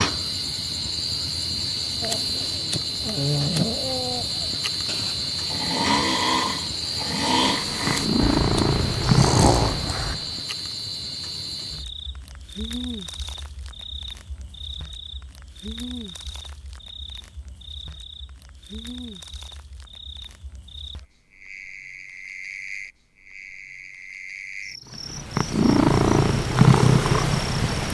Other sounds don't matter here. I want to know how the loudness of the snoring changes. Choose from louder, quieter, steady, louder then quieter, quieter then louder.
quieter then louder.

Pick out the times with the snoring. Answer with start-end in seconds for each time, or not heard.
2.0-10.2.